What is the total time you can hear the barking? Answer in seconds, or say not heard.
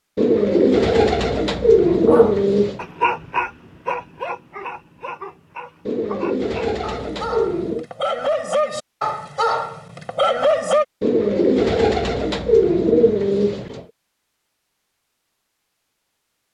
9 s.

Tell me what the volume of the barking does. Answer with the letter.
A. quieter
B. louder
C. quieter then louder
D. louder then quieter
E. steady
C.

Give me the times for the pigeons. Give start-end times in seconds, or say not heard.
0.1-2.8, 5.8-7.8, 11.0-13.8.